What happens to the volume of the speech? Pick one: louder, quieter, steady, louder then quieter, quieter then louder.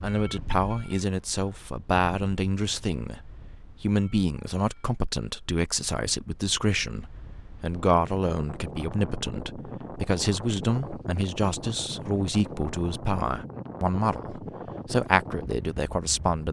steady.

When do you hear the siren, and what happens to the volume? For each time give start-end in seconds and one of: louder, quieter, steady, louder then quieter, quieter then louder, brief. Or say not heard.
not heard.